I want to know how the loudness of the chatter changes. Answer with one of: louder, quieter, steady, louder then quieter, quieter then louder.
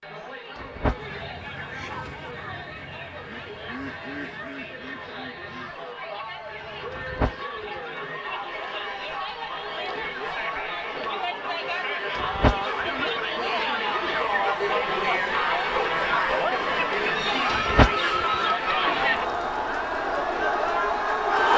louder.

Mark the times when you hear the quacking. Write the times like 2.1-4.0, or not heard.
0.9-7.2.